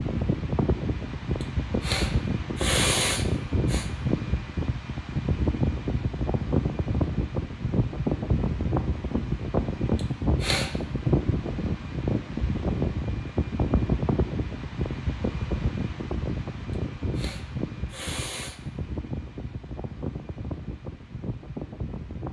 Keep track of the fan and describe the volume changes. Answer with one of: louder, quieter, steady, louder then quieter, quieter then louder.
quieter.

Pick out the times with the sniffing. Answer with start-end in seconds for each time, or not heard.
1.4-3.9, 9.9-10.8, 16.7-18.6.